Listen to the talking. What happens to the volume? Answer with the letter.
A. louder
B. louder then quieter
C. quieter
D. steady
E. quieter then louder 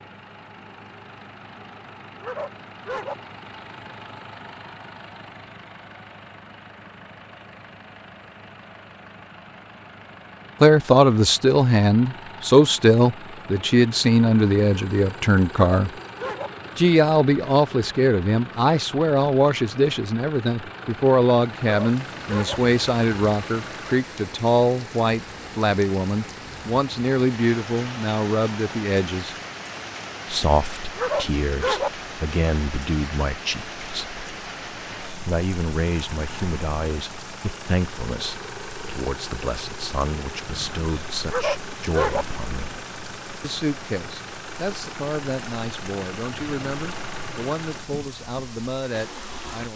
C.